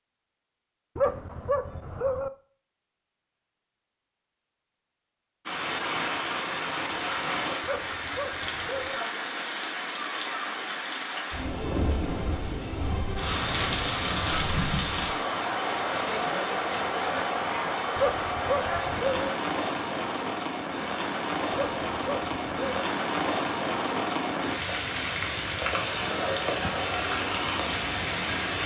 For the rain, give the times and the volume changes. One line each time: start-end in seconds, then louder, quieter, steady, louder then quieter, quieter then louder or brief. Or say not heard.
5.5-28.6 steady.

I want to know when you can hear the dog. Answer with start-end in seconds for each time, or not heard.
0.9-2.3, 7.6-9.0, 17.9-19.3, 21.5-22.9.